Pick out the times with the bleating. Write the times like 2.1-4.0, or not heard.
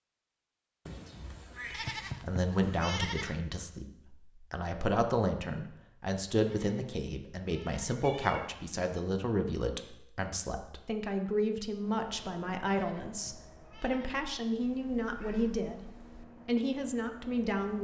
1.7-3.4, 6.5-8.1, 12.7-14.2.